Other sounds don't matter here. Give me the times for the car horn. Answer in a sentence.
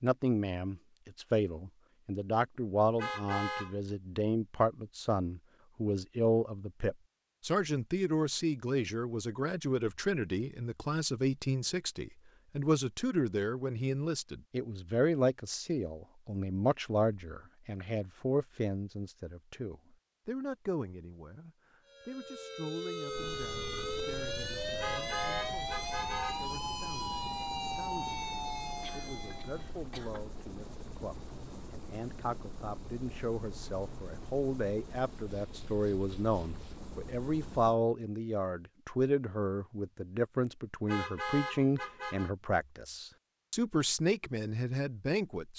You can hear the car horn from 3.0 to 3.8 s, from 24.8 to 26.4 s and from 40.9 to 42.3 s.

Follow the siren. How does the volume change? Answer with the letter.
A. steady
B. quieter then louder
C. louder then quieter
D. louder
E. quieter
A.